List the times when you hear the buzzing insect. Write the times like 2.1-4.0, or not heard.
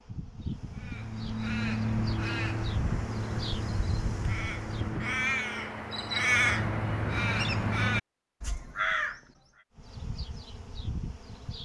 0.0-5.0, 9.8-11.6.